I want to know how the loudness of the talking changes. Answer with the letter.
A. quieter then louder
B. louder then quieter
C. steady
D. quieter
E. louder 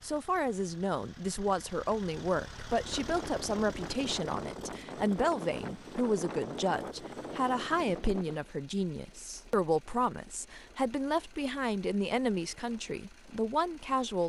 C.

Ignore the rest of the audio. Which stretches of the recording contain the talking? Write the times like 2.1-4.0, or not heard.
0.0-14.2.